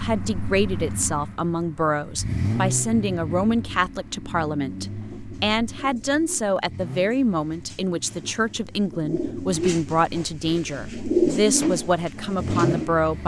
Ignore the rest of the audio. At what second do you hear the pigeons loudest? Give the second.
11 s.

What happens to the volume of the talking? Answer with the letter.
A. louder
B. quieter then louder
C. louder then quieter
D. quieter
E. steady
E.